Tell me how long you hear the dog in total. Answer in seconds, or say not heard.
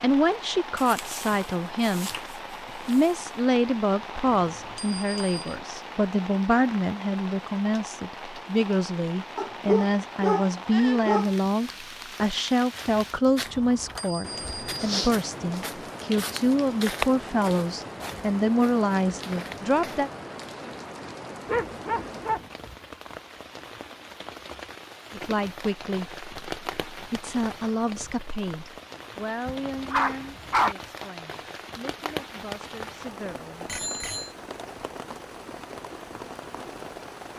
7 s.